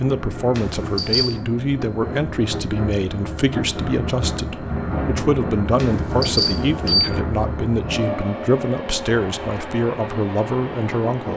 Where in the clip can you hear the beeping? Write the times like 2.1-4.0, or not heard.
0.6-1.3, 5.8-7.1.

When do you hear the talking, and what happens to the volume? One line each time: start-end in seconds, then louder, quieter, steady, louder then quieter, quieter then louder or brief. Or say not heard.
0.0-11.3 steady.